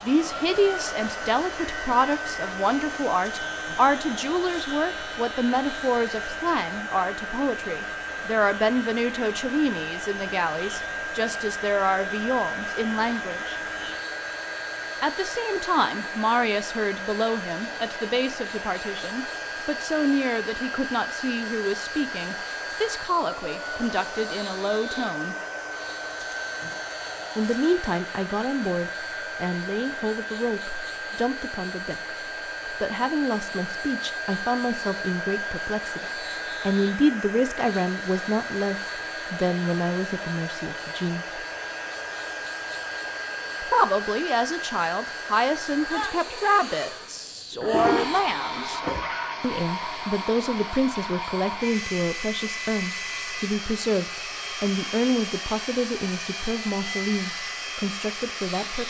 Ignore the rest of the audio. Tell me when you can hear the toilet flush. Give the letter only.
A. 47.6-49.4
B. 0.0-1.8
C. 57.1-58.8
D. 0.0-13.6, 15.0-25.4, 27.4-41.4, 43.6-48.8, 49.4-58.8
A.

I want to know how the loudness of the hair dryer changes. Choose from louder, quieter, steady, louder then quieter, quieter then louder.
steady.